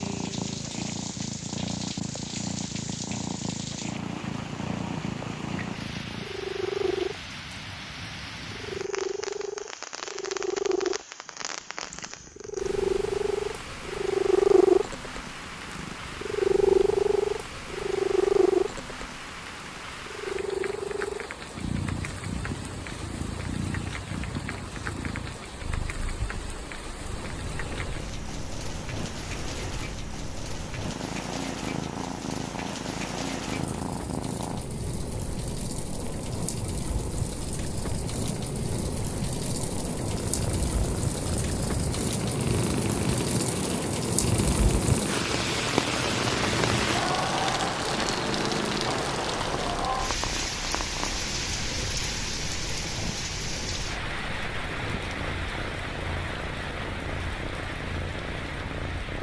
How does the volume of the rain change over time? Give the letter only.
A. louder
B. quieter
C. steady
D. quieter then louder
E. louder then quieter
A.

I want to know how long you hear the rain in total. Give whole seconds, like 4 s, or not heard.
59 s.